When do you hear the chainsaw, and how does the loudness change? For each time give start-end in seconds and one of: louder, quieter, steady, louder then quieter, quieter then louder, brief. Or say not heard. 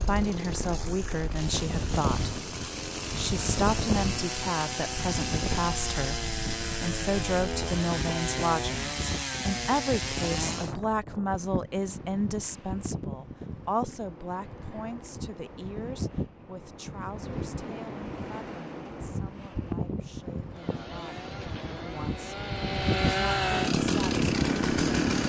0.0-10.8 louder
20.5-25.2 louder.